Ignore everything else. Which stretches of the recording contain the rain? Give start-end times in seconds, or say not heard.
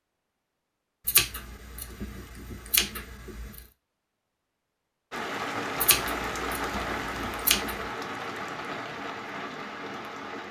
5.1-10.4.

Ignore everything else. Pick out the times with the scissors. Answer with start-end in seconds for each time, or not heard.
1.1-3.6, 5.8-7.8.